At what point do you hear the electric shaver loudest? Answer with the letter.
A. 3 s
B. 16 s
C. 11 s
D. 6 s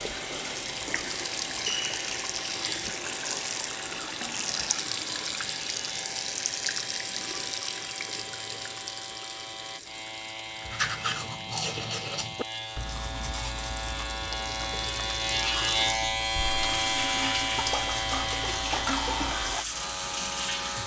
B.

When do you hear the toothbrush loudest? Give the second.
11 s.